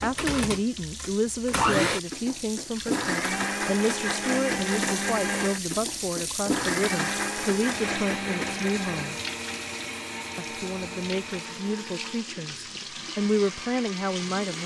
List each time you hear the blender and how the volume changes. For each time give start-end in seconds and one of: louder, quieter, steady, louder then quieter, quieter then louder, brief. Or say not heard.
0.0-14.6 quieter.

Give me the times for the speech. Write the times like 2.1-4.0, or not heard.
0.0-9.2, 10.3-14.6.